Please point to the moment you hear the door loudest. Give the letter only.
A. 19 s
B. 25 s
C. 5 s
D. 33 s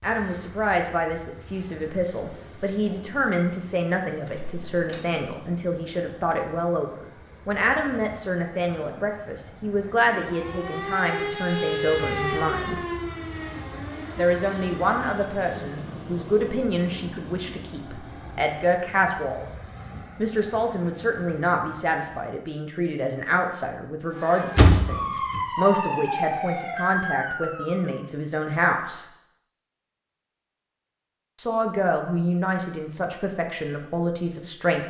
B.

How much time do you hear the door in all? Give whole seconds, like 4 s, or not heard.
2 s.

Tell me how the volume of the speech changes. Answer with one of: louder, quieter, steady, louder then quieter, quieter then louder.
steady.